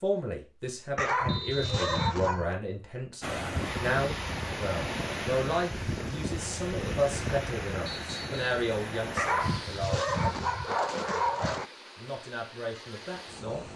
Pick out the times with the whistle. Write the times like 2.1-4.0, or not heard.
1.2-2.1, 7.8-8.4.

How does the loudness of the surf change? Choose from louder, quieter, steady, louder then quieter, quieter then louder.
quieter.